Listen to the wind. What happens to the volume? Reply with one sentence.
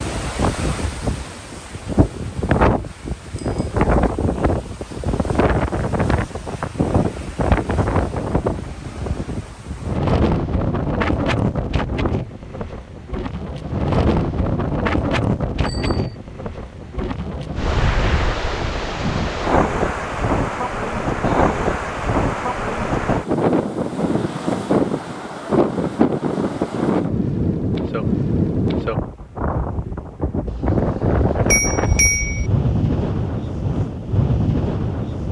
The volume of the wind stays about the same.